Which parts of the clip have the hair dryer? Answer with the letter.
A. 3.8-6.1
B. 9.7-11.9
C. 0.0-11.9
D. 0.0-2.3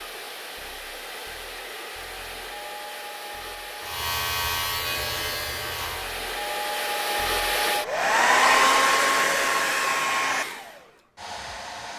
C.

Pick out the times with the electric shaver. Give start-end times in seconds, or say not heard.
3.8-6.1.